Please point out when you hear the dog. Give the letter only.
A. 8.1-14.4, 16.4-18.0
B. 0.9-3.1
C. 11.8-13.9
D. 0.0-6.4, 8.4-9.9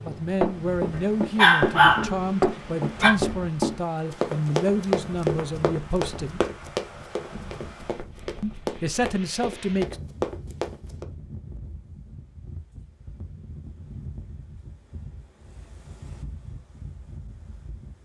B.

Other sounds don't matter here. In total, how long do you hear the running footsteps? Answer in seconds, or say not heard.
11 s.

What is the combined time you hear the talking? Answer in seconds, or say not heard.
8 s.